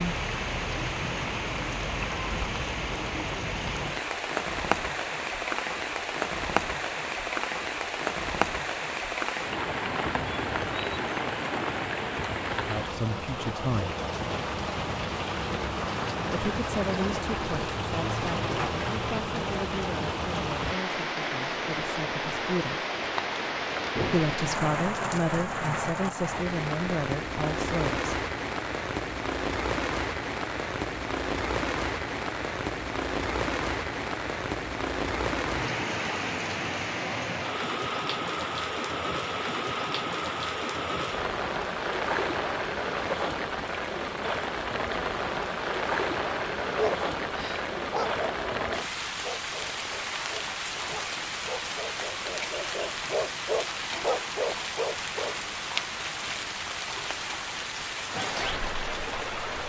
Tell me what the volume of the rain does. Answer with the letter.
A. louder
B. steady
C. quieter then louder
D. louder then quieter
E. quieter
B.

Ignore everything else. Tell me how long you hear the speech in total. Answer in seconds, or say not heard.
12 s.